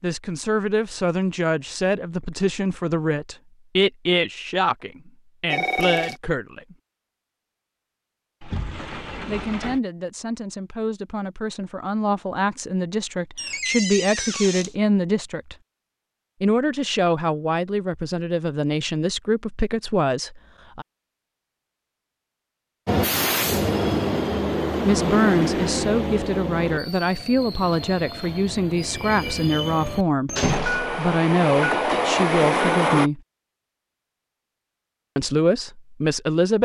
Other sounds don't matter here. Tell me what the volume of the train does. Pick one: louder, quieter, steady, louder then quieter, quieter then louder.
quieter then louder.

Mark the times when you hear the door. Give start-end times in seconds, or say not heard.
8.4-9.8, 13.3-14.8, 30.4-31.0.